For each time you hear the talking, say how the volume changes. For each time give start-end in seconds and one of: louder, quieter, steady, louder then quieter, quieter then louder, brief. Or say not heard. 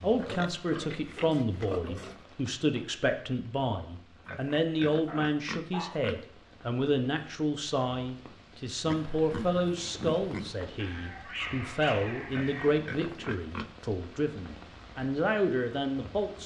0.0-16.4 steady.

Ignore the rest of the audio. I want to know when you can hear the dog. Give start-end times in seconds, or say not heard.
5.0-6.0, 10.8-12.8.